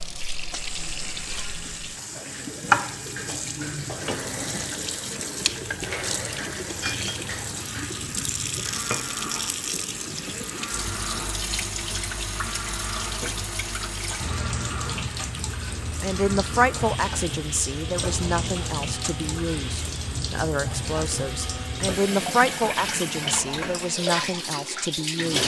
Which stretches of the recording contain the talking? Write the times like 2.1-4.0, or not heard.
16.0-25.4.